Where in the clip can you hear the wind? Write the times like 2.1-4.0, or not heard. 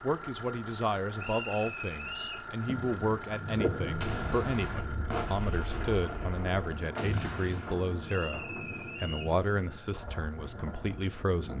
2.6-11.5.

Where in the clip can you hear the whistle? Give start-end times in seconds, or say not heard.
1.1-2.5, 8.1-9.3.